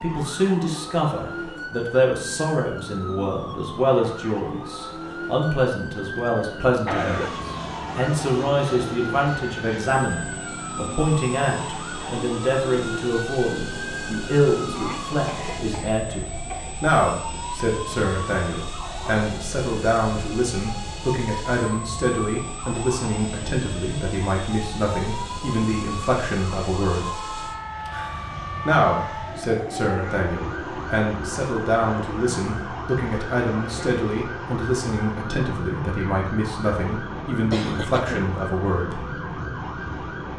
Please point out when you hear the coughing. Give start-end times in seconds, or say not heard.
6.7-7.5, 14.8-16.7, 37.5-38.2.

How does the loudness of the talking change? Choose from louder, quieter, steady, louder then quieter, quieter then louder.
steady.